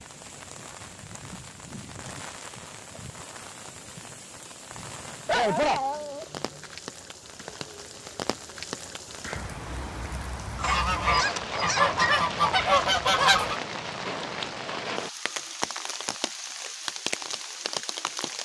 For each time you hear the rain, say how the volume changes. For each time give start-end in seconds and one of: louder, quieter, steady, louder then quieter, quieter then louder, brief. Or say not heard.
0.0-18.4 louder.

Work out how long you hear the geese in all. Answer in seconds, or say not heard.
3 s.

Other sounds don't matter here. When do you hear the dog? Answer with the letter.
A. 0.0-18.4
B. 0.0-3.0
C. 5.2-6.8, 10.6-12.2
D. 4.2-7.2
C.